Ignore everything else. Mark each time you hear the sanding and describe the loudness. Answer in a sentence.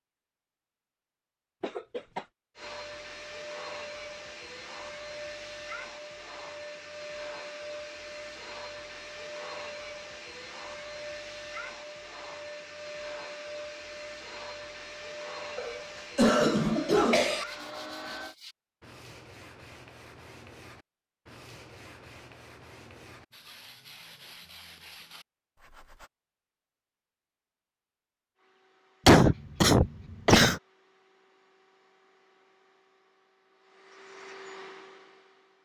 You can hear the sanding from 17.4 to 26.1 s, at a steady volume.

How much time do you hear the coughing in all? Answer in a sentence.
The coughing can be heard for 4 seconds in total.